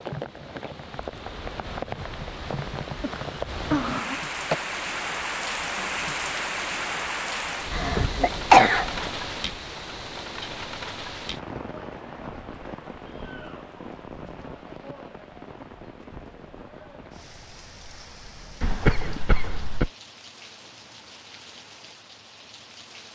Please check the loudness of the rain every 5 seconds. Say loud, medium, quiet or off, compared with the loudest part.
loud, loud, medium, quiet, quiet.